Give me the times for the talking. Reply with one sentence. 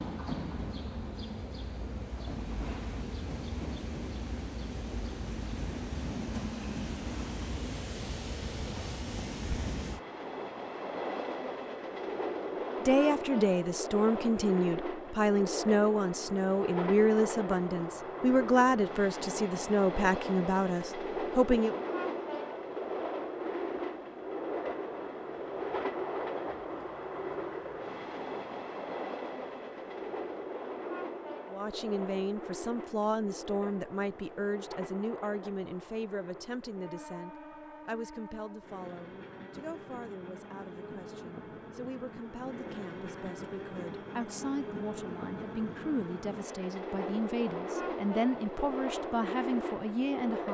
The talking can be heard from 12.8 to 21.8 s and from 31.5 to 50.4 s.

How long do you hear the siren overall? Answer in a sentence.
The siren can't be heard in this clip.